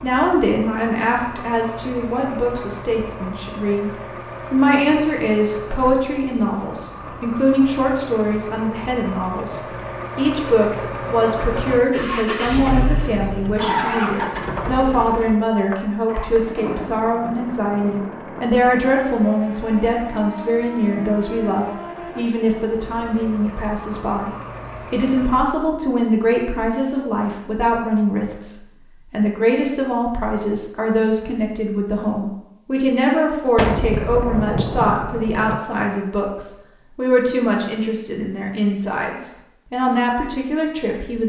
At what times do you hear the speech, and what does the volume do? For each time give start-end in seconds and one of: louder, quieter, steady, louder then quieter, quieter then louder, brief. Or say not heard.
0.0-41.2 steady.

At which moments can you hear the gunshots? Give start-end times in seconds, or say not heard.
33.5-35.6.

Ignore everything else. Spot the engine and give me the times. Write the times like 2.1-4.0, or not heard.
0.0-25.4.